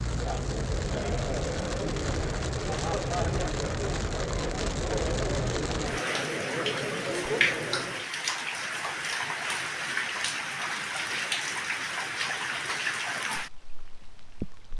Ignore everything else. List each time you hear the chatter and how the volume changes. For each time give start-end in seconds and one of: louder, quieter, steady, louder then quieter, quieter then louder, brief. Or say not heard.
0.0-8.1 steady.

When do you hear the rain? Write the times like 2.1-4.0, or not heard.
0.0-14.7.